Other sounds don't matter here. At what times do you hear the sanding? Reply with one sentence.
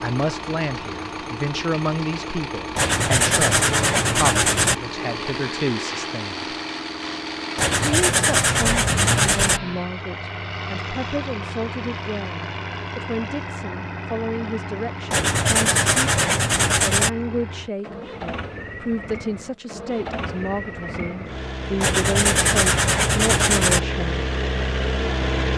You can hear the sanding from 2.8 to 4.8 s, from 7.5 to 9.6 s, from 15.1 to 17.1 s and from 21.8 to 23.8 s.